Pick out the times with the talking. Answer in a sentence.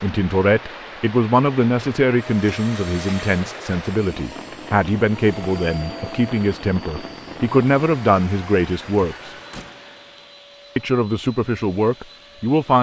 The talking can be heard from 0.0 to 9.3 s and from 10.8 to 12.7 s.